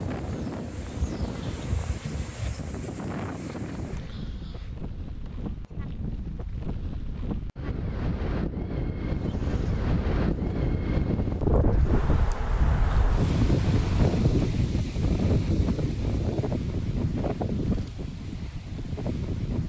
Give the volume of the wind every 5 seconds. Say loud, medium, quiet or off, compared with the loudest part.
medium, medium, loud, loud.